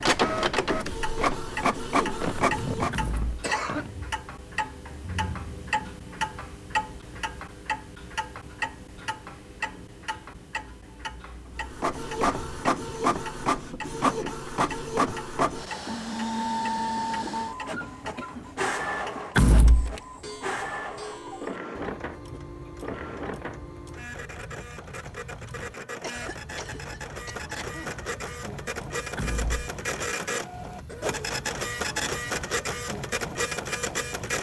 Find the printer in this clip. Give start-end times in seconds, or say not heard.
0.0-3.0, 11.6-34.3.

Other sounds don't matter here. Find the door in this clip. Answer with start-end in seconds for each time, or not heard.
2.9-3.4, 19.4-19.9, 29.1-29.6.